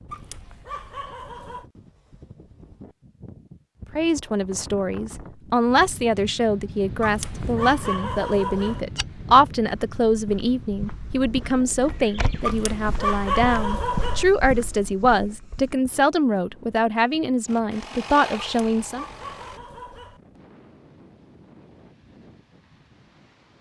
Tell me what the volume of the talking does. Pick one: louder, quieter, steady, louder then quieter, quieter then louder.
steady.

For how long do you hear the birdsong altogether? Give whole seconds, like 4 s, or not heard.
not heard.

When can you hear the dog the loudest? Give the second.
13 s.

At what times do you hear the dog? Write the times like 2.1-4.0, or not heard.
0.1-1.7, 7.0-8.8, 12.4-14.2, 18.4-20.2.